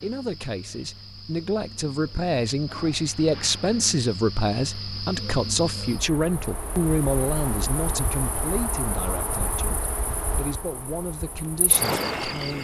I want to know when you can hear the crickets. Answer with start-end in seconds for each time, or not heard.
0.0-12.5.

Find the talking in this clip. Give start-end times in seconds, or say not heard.
0.0-12.5.